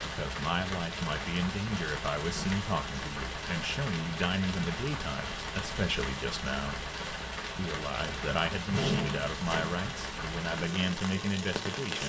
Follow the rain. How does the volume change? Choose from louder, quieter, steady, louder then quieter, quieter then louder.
steady.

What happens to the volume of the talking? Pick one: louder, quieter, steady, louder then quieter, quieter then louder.
steady.